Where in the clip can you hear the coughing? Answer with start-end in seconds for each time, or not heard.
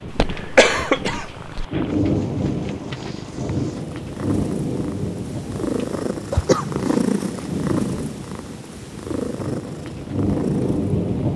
0.1-1.6, 6.3-7.0.